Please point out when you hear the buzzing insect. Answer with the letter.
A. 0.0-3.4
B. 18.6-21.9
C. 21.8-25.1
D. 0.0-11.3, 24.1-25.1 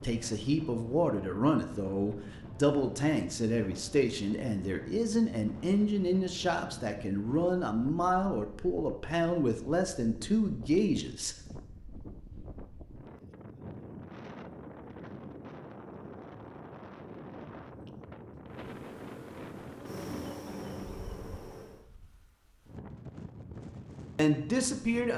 B.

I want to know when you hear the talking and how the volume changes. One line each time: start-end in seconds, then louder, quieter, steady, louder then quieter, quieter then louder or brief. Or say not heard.
0.0-11.3 steady
24.1-25.1 brief.